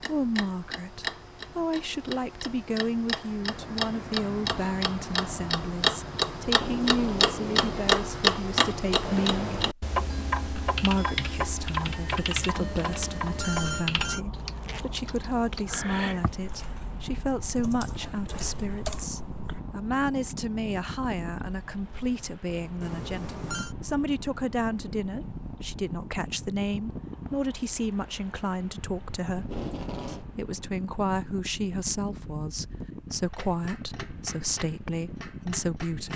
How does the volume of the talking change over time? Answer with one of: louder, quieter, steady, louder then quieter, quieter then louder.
steady.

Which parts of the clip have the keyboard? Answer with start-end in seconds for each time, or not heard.
10.6-19.6.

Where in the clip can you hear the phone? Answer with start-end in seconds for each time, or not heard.
12.7-14.2, 22.8-23.8.